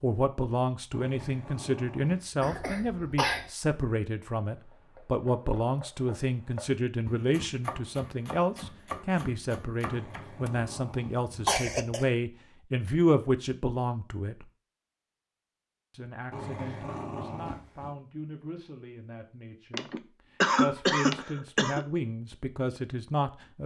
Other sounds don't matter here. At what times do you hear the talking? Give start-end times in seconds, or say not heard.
0.0-14.4, 15.9-19.9, 20.6-23.6.